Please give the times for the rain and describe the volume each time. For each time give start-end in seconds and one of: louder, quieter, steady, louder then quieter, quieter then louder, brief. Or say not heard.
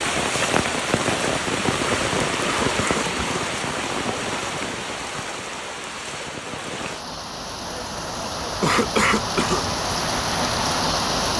0.0-11.3 quieter then louder.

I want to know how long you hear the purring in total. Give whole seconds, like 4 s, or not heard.
not heard.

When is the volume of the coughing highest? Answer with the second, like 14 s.
9 s.